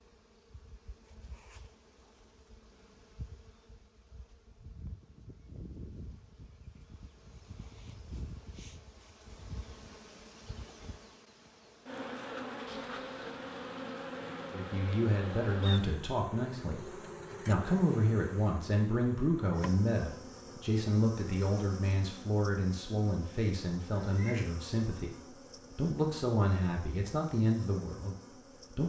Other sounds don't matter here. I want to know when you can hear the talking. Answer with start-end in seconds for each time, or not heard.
14.5-28.8.